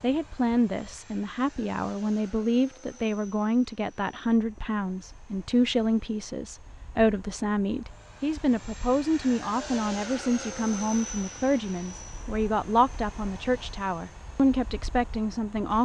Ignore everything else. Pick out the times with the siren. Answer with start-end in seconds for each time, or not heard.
not heard.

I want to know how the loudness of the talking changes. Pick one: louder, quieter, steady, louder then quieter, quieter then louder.
steady.